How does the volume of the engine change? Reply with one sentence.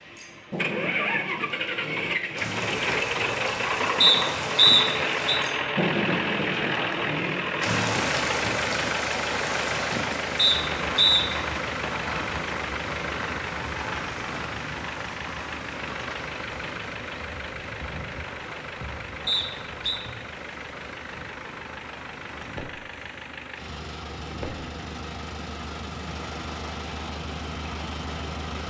The loudness of the engine goes down.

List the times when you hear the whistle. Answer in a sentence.
You can hear the whistle from 4.0 to 5.4 s, from 10.3 to 11.2 s and from 19.2 to 20.0 s.